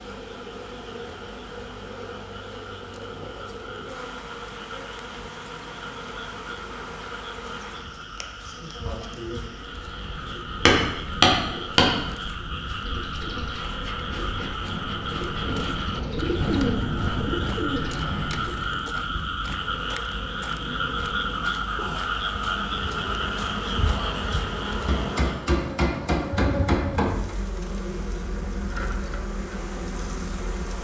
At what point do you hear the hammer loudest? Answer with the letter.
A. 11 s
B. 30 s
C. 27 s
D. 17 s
A.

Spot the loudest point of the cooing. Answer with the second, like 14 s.
17 s.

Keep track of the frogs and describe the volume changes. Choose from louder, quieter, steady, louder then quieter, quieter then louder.
louder.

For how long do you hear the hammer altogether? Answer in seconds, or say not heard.
4 s.